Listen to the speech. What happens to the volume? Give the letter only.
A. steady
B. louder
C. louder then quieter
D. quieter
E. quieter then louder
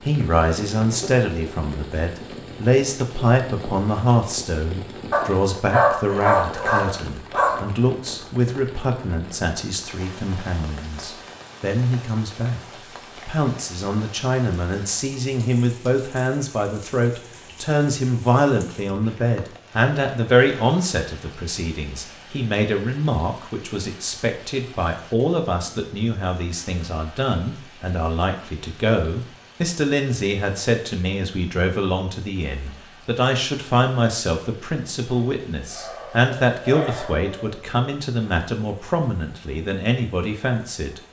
A.